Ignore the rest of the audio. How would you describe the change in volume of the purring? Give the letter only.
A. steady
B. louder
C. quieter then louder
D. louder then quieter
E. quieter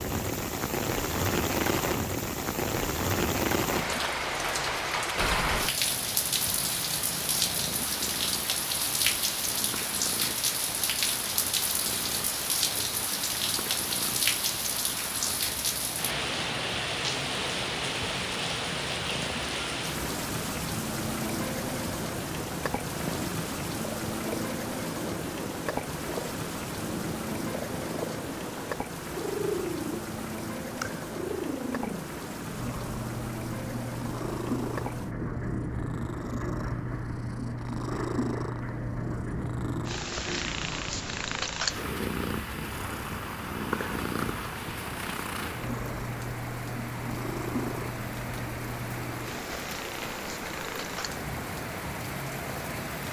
B.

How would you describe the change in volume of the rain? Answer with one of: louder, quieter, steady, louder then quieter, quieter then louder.
quieter.